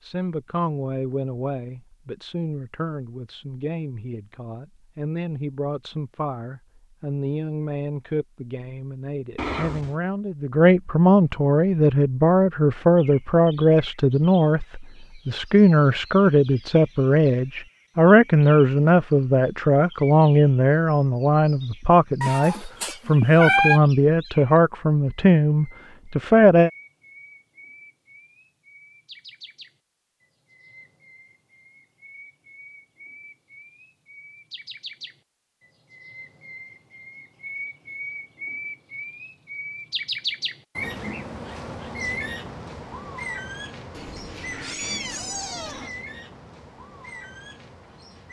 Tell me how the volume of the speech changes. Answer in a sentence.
The volume of the speech goes up.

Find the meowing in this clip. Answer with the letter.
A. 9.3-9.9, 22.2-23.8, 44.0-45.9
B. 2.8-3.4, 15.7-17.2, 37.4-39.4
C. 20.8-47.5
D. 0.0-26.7
A.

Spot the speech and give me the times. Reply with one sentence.
The speech can be heard from 0.0 to 26.7 s.